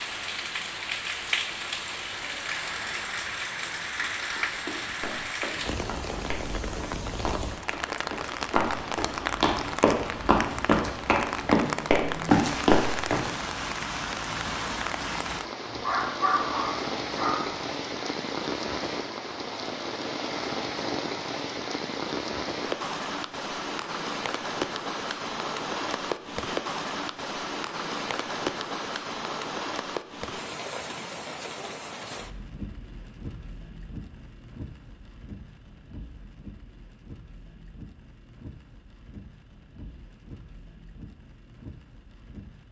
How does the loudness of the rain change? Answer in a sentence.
The volume of the rain goes down.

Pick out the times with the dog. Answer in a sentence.
You can hear the dog from 15.7 to 17.6 s.